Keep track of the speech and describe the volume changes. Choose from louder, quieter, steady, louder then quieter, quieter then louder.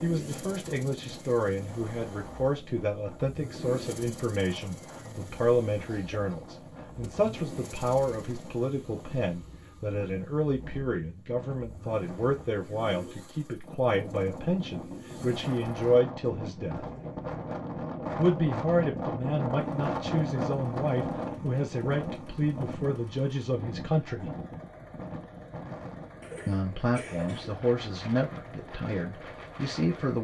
steady.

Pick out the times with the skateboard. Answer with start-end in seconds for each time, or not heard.
not heard.